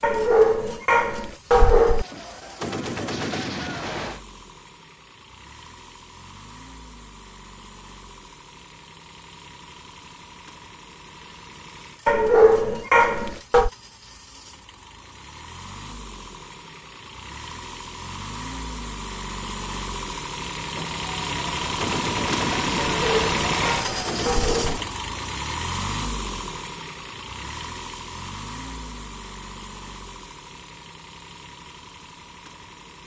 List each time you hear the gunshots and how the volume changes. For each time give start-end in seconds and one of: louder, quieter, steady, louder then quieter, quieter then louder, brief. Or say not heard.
1.6-4.2 brief
20.8-24.9 louder.